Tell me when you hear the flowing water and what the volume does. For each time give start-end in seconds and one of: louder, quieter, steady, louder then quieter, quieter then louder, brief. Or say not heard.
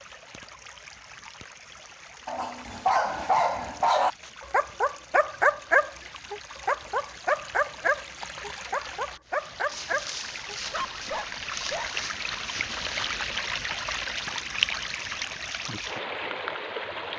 0.0-17.1 louder.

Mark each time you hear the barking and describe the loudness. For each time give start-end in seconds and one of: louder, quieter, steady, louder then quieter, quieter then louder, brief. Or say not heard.
2.2-11.9 quieter.